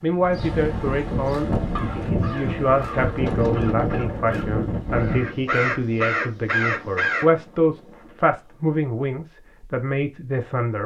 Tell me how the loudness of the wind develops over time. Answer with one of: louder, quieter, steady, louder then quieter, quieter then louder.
quieter.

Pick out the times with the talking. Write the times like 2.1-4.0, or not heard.
0.0-10.8.